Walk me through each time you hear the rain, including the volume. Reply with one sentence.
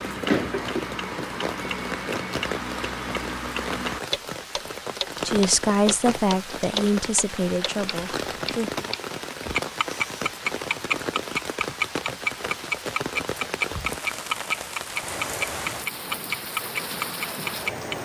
The rain can be heard from 0.0 to 18.0 s, at a steady volume.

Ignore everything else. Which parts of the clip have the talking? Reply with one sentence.
The talking can be heard from 5.2 to 8.8 s.